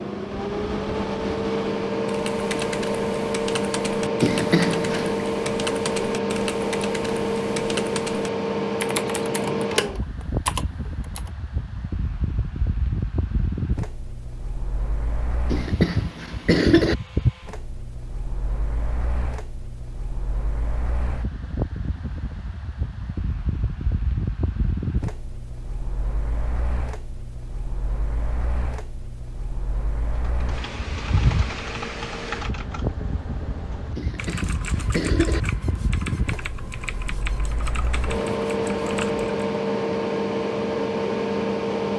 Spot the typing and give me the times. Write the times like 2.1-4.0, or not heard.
2.0-11.3, 30.3-39.3.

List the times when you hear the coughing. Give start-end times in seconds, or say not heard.
4.2-5.2, 15.5-16.9, 34.0-35.4.